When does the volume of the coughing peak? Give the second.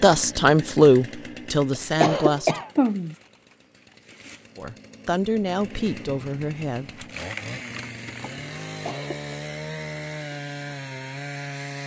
2 s.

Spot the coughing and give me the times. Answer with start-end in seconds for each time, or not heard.
2.0-3.1, 8.8-9.3.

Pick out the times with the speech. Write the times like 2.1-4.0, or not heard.
0.0-2.6, 4.5-7.0.